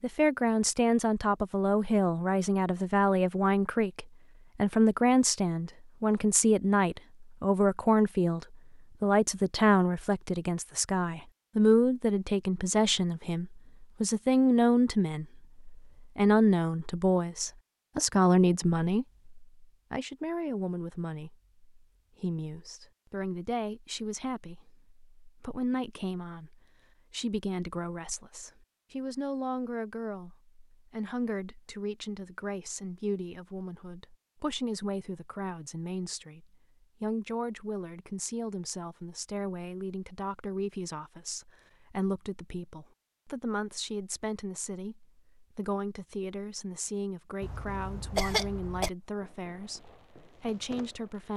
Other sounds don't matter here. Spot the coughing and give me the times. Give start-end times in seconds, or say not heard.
47.4-48.9.